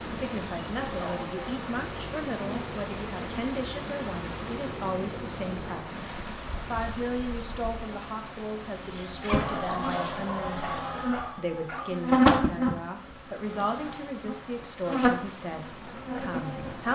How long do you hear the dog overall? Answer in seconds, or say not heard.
3 s.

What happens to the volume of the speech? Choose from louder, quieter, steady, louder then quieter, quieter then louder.
steady.